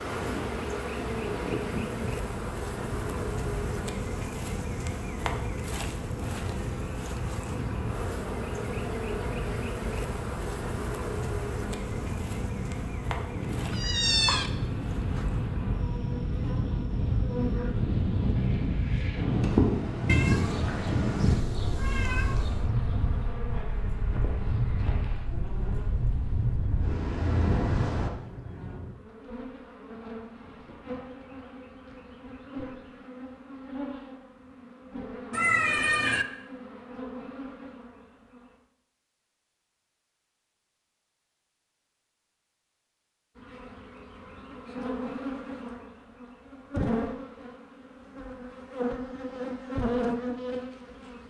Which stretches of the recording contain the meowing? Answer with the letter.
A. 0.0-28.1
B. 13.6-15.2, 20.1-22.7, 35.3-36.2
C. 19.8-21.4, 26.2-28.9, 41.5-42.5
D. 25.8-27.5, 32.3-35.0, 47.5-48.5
B.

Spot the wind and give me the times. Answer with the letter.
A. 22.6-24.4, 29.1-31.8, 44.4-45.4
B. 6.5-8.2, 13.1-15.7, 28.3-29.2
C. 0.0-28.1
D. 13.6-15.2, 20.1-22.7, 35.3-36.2
C.